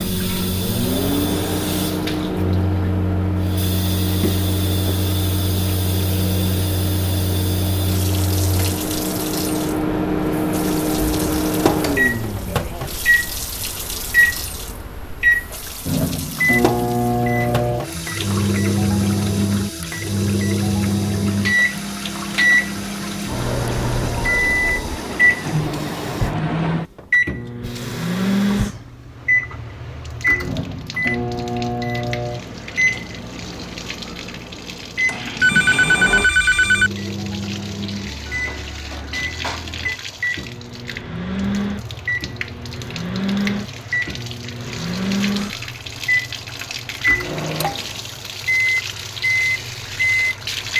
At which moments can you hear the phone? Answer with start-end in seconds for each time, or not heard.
35.4-36.9.